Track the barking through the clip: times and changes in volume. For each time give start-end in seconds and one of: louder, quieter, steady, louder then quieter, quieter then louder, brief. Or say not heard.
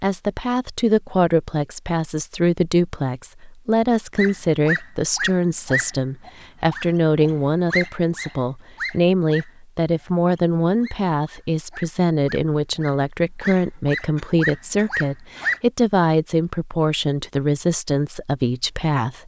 4.2-15.6 quieter then louder.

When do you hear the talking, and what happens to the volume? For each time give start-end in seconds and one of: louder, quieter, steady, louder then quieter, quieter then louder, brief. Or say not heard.
0.0-19.2 steady.